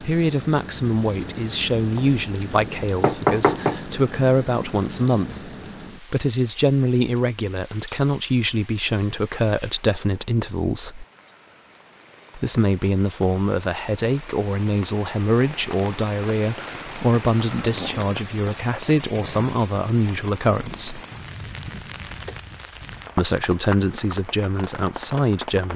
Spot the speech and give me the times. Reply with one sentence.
The speech can be heard from 0.0 to 11.1 s, from 12.3 to 21.0 s and from 23.1 to 25.7 s.